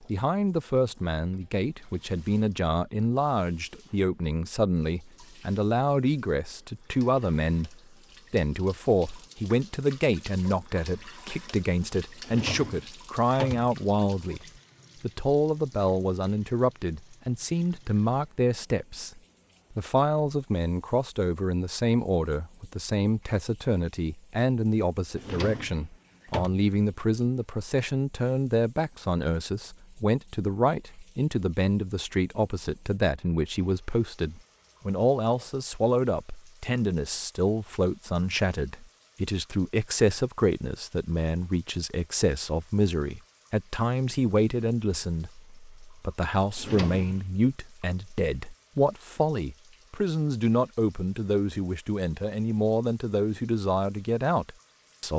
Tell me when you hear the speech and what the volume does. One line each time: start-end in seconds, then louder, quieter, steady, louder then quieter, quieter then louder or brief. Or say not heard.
0.0-55.1 steady.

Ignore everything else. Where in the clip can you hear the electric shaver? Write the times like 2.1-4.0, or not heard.
not heard.